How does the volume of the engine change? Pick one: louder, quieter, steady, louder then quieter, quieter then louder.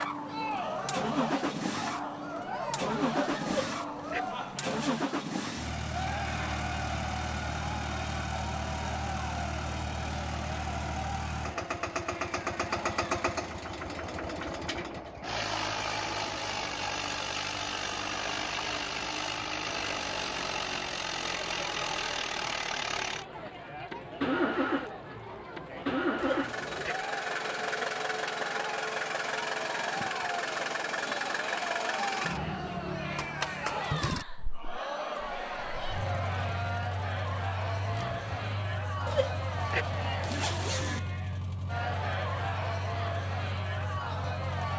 quieter.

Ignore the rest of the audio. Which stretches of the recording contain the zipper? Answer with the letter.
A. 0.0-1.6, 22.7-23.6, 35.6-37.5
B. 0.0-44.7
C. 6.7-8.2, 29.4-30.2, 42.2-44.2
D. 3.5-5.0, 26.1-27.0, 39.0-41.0
D.